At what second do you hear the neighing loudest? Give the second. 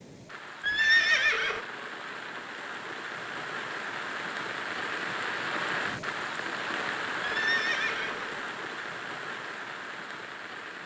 1 s.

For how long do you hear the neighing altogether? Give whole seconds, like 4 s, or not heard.
2 s.